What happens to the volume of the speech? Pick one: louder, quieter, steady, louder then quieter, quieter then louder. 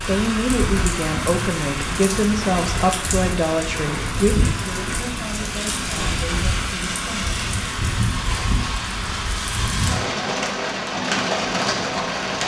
quieter.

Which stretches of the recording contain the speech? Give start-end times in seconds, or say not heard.
0.0-7.5.